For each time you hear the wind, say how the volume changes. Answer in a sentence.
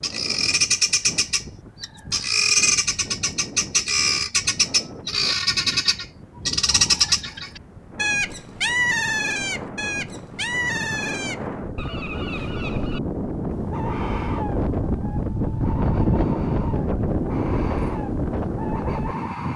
You can hear the wind from 0.0 to 19.5 s, getting louder.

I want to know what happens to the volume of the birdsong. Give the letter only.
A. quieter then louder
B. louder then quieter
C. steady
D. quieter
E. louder
D.